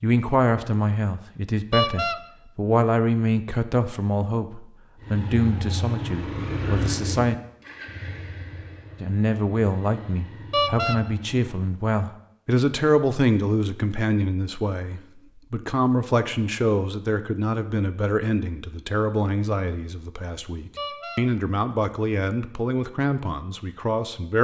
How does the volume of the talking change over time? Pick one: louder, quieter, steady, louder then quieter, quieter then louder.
steady.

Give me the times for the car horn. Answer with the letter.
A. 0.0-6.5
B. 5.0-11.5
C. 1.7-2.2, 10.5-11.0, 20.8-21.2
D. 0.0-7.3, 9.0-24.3
C.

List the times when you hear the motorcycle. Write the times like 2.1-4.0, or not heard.
5.0-11.5.